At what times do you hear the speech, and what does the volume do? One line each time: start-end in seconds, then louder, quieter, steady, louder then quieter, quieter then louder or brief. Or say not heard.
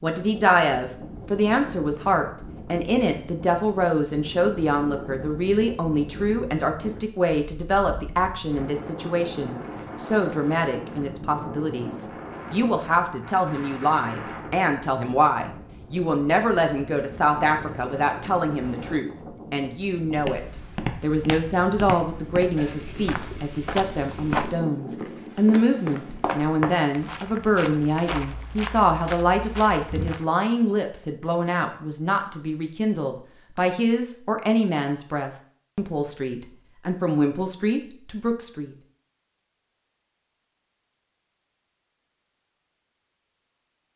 0.0-38.8 steady.